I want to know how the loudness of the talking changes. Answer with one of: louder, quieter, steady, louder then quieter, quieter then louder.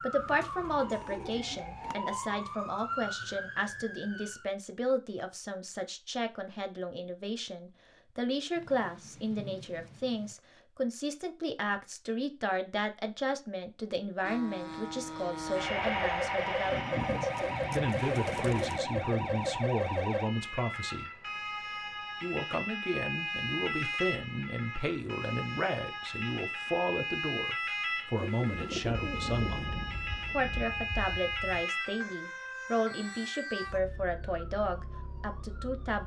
steady.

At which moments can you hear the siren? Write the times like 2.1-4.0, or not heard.
0.0-4.5, 15.8-36.0.